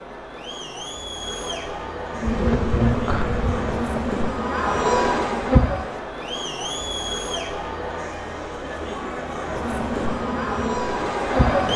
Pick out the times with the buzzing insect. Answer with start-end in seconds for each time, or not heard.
2.1-5.8, 9.5-11.7.